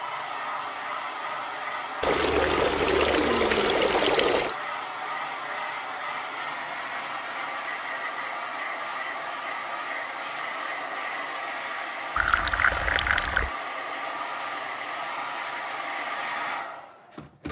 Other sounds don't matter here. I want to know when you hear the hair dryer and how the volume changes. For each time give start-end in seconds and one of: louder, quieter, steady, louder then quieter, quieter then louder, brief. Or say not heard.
0.0-17.4 steady.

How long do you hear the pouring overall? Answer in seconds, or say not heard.
4 s.